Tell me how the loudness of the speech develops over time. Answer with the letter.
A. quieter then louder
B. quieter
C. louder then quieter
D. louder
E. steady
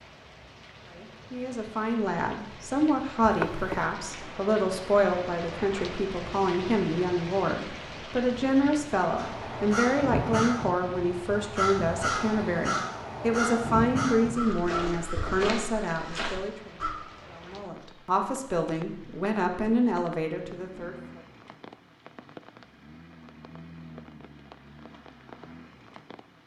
E.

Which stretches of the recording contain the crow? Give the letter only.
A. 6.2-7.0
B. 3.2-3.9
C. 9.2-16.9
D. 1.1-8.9
C.